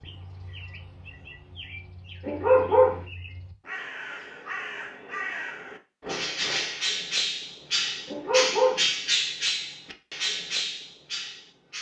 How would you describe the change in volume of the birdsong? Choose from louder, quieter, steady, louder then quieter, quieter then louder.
louder.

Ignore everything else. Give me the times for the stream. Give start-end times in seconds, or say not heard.
not heard.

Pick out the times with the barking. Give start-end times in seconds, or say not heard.
2.2-3.0, 8.1-8.8.